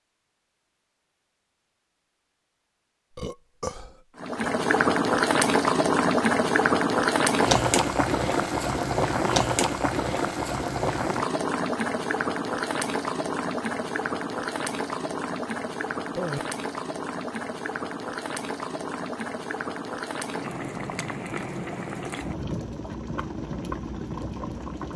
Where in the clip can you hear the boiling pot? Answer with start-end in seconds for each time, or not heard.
4.2-24.9.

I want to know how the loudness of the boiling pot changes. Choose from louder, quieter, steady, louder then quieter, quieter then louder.
quieter.